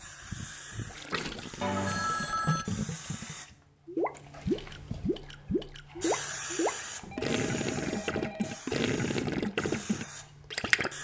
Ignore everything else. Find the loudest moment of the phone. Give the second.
2 s.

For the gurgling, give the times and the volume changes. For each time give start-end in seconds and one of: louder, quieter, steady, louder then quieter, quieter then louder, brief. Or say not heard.
0.9-10.9 louder.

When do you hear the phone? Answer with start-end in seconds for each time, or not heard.
1.6-2.6, 7.1-8.6.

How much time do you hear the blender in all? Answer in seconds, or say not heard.
not heard.